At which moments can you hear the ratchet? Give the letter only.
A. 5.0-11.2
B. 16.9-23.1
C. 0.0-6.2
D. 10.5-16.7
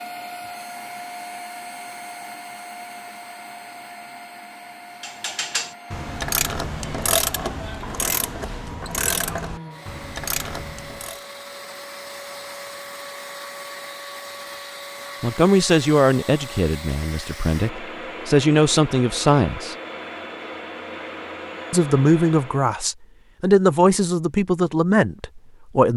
A.